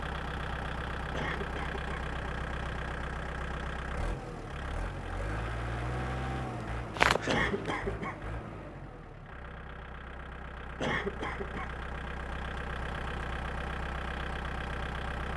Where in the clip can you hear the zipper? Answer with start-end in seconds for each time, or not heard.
7.0-7.8.